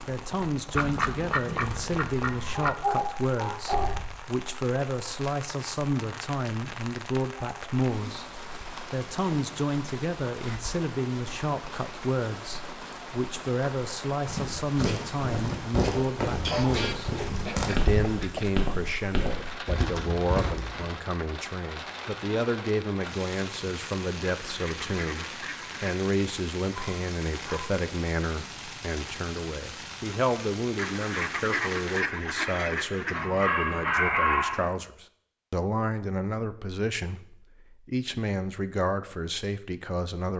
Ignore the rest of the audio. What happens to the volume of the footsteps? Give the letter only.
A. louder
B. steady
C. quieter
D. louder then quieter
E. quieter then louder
B.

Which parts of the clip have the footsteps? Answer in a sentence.
You can hear the footsteps from 14.2 to 20.9 s.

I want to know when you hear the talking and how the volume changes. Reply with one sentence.
The talking can be heard from 0.1 to 40.3 s, at a steady volume.